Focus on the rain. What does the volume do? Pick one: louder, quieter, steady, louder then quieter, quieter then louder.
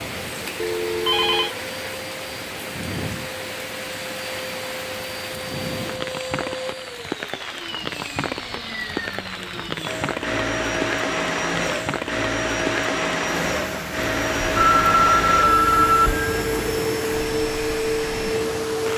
steady.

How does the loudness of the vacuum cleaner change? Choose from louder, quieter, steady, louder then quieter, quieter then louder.
louder.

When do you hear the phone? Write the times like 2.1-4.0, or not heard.
0.6-1.6, 14.4-16.6.